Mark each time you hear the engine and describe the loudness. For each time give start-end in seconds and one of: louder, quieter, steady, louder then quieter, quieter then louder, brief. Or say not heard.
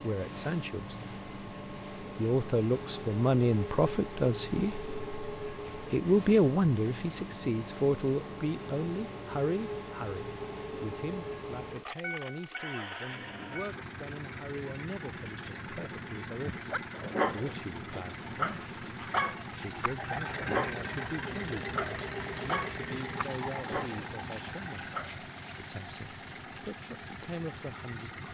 0.0-28.3 steady.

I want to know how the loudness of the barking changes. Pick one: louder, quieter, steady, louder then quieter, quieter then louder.
quieter.